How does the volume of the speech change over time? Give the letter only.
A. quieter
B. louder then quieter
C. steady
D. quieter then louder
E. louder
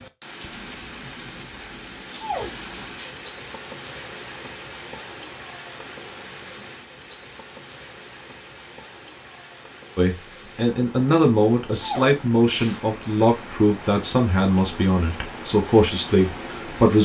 C.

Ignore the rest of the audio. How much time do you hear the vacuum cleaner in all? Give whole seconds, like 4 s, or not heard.
not heard.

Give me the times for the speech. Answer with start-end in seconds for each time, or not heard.
9.9-17.0.